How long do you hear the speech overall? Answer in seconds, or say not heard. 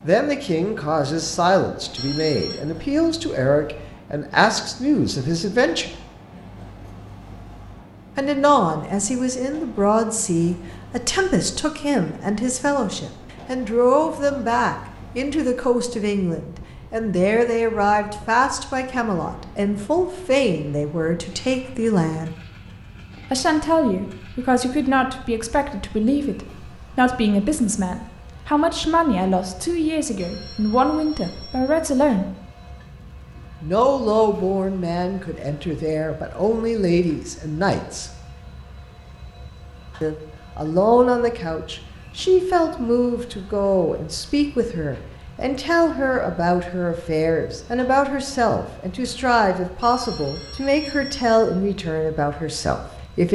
47 s.